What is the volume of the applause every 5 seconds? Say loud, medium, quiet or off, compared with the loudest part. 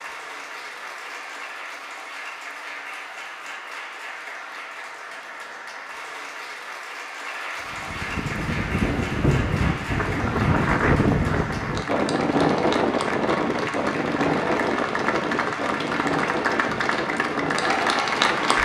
medium, medium, medium, loud.